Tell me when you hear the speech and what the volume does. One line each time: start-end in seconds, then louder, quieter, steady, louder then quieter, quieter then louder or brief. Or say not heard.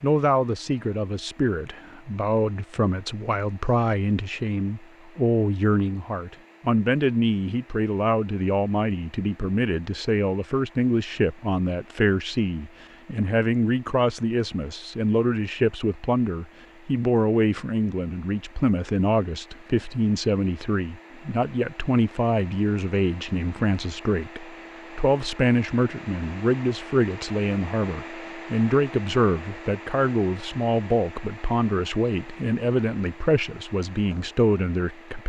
0.0-35.2 steady.